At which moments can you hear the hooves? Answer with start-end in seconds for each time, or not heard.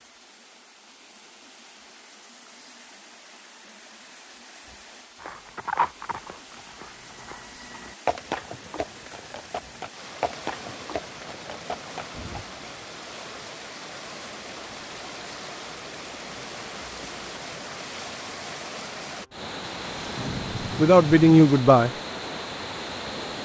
5.2-12.4.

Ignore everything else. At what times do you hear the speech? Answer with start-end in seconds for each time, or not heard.
20.8-21.9.